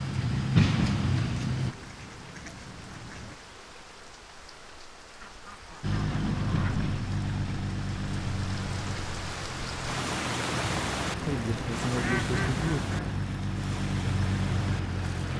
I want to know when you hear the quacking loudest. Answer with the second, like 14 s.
12 s.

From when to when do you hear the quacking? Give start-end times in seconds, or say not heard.
1.5-3.4, 5.2-6.8, 10.8-13.2.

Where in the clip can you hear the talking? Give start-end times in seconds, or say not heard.
11.2-12.8.